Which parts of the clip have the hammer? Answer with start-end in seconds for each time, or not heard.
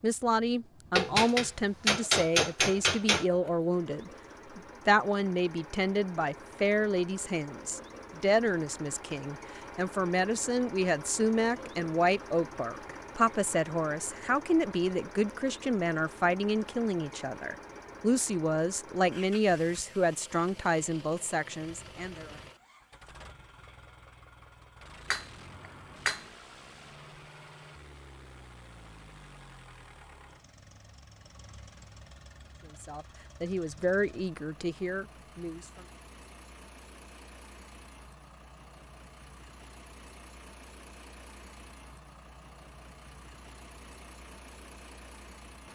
0.9-3.2, 25.1-26.2.